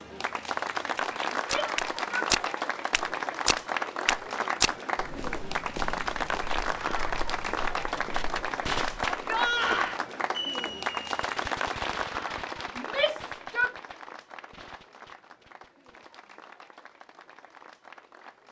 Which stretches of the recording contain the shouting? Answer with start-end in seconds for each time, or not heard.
1.4-2.3, 9.1-10.0, 12.8-13.7.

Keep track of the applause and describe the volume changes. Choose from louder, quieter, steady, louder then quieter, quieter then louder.
quieter.